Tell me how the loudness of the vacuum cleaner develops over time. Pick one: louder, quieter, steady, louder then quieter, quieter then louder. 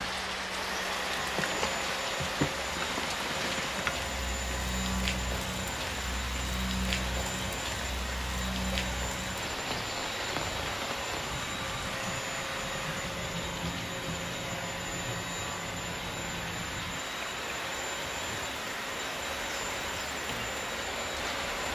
steady.